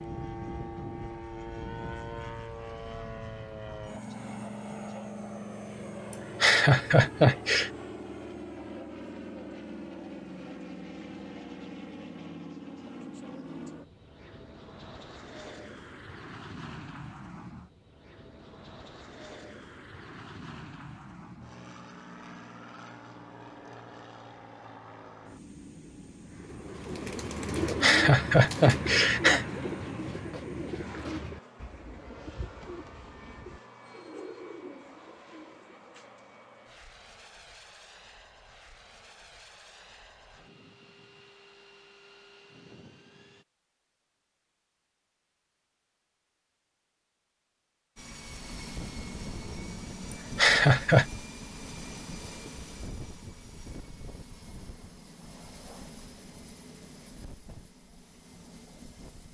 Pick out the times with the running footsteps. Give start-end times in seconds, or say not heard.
not heard.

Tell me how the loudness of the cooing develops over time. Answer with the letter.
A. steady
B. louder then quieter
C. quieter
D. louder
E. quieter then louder
C.